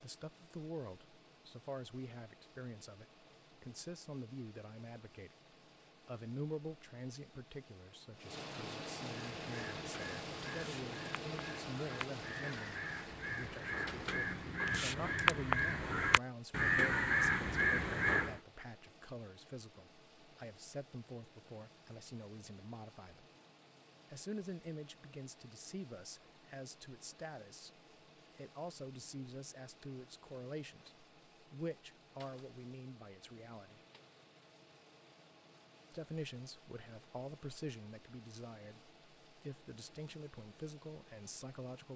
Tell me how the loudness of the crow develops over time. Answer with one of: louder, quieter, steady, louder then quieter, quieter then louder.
louder.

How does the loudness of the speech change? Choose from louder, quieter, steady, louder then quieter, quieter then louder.
steady.